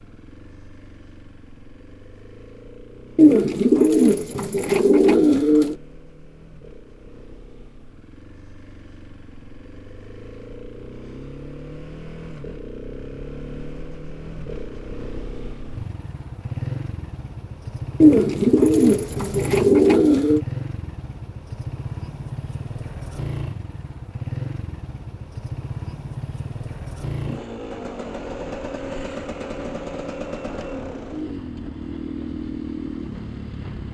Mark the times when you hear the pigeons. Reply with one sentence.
You can hear the pigeons from 3.1 to 5.8 s and from 18.0 to 20.4 s.